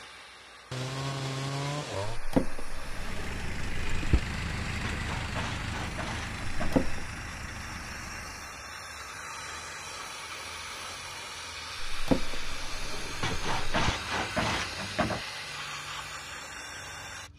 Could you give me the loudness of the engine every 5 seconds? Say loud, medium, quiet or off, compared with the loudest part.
loud, loud, off, off.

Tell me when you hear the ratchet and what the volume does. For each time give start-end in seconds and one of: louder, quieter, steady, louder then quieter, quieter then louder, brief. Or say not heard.
not heard.